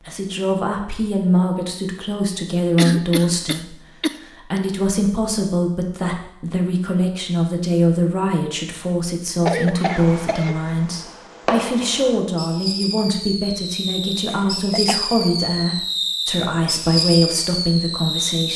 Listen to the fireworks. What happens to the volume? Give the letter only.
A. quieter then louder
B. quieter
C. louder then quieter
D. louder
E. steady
D.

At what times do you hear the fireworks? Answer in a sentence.
The fireworks can be heard from 9.8 to 18.5 s.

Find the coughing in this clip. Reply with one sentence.
You can hear the coughing from 2.8 to 4.6 s, from 9.4 to 10.6 s and from 14.3 to 15.0 s.